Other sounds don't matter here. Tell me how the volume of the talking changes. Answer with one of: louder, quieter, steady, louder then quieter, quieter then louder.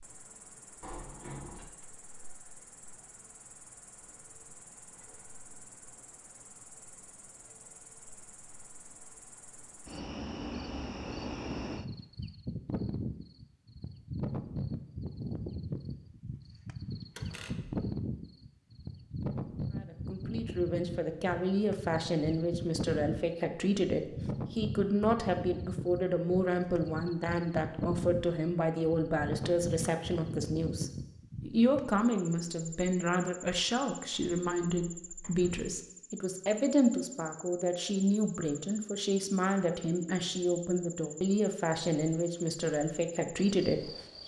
steady.